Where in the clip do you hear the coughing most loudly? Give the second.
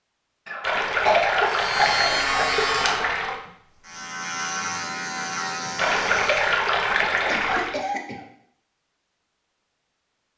1 s.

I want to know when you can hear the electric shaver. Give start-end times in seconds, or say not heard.
1.4-6.6.